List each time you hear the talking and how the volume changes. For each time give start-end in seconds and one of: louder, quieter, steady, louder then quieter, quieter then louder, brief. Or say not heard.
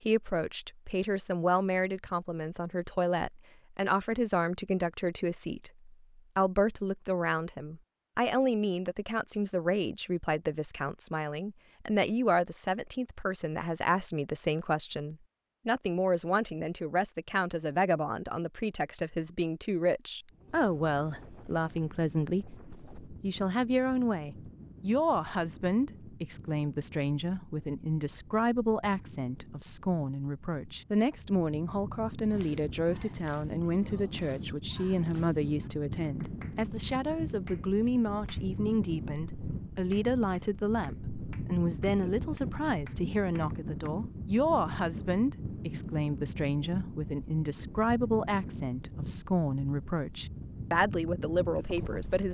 0.0-52.2 steady.